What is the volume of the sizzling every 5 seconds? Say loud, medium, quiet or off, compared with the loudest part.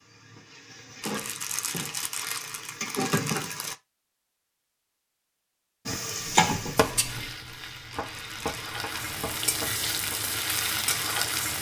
medium, loud, loud.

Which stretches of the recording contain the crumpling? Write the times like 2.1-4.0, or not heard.
1.0-3.8, 7.9-8.6.